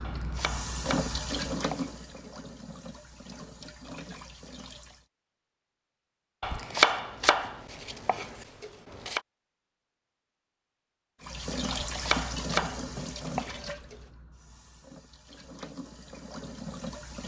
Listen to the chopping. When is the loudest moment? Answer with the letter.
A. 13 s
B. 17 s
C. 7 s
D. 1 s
C.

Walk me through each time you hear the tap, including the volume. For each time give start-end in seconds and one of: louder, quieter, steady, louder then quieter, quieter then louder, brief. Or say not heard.
0.0-5.0 quieter
11.2-17.2 quieter then louder.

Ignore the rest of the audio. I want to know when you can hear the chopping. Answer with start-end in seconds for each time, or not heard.
0.1-2.3, 6.4-9.2, 11.7-13.9.